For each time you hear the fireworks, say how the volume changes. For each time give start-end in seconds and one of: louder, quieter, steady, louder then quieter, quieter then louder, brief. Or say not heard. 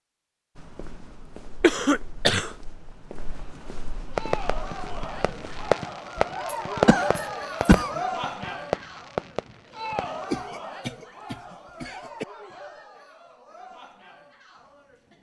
4.2-10.3 louder then quieter.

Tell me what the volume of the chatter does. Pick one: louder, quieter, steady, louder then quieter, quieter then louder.
louder then quieter.